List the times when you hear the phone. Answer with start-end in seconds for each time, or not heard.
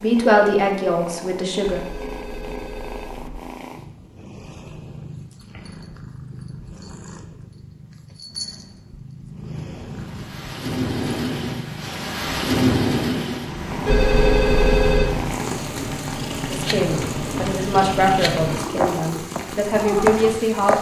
1.6-3.4, 13.8-15.1.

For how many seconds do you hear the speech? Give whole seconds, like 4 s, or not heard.
6 s.